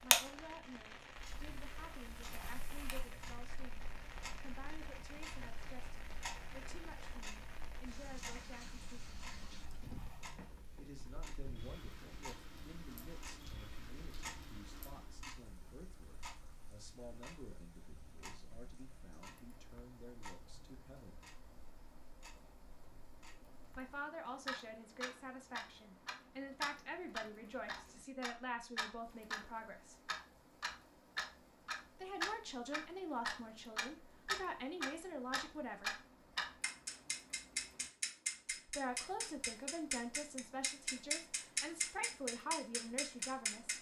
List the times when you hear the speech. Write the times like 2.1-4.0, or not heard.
0.0-9.2, 10.8-21.2, 23.8-30.1, 31.9-36.0, 38.6-43.7.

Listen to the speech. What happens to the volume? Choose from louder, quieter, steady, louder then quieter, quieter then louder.
louder.